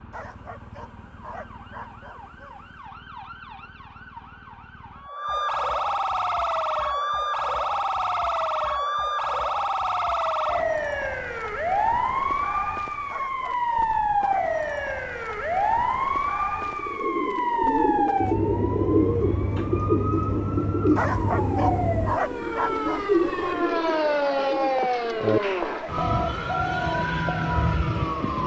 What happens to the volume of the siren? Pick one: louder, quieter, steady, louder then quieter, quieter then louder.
louder.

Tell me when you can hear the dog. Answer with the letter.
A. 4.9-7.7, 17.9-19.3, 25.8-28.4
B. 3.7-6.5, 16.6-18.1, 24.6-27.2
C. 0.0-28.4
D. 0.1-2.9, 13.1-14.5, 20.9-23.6
D.